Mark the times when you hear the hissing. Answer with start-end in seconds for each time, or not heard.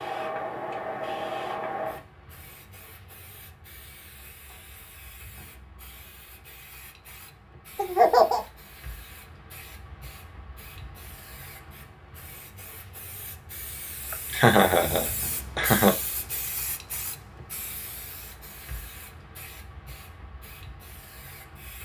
0.0-21.8.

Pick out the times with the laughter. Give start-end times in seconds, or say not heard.
7.8-8.4, 14.3-15.9.